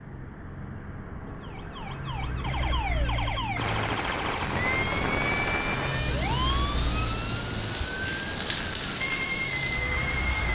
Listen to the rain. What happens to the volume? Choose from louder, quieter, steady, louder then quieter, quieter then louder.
steady.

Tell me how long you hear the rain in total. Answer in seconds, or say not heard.
7 s.